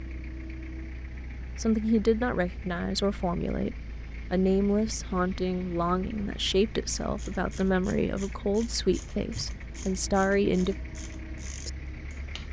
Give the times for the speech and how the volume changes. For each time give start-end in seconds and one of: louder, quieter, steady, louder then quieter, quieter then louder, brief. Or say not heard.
1.6-10.8 steady.